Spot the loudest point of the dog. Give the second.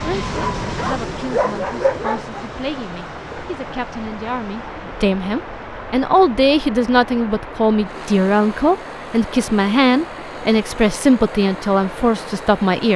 2 s.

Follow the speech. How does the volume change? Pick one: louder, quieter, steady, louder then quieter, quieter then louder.
louder.